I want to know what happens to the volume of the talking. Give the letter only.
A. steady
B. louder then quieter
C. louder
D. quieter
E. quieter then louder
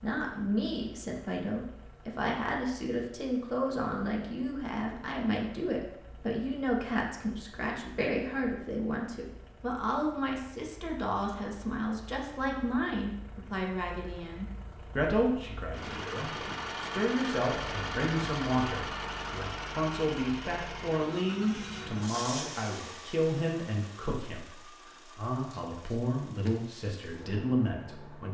A.